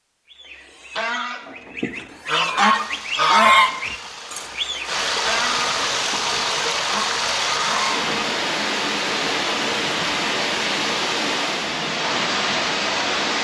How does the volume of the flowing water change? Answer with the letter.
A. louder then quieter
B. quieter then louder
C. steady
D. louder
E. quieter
D.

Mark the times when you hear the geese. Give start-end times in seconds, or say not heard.
0.3-8.0.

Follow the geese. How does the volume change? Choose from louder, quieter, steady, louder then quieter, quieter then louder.
louder then quieter.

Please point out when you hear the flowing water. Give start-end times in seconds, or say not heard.
2.7-13.3.